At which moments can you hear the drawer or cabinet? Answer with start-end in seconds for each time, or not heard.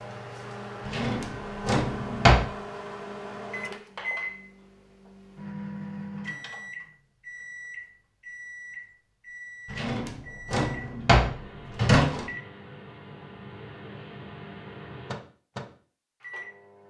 0.8-2.5, 9.7-12.2.